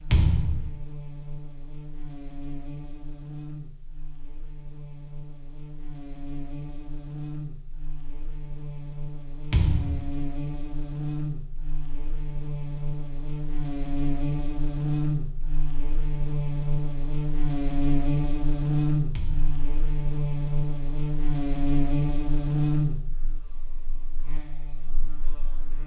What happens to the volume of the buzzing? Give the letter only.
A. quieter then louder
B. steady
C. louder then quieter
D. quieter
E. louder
E.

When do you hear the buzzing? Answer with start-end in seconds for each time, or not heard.
0.0-25.8.